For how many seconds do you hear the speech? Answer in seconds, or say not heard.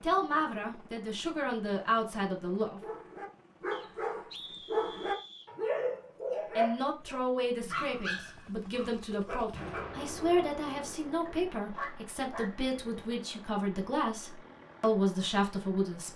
12 s.